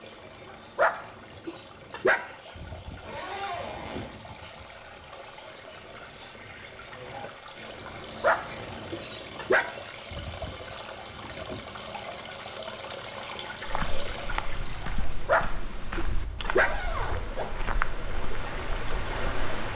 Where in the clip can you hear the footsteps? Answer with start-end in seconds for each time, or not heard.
13.7-19.5.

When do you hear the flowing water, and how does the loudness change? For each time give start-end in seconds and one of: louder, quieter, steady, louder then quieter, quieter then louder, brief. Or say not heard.
0.0-19.7 louder.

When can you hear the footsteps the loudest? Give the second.
18 s.